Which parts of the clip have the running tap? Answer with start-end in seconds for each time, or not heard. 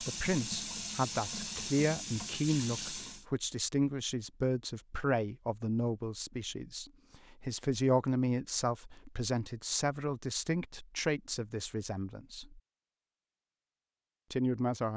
0.0-3.2.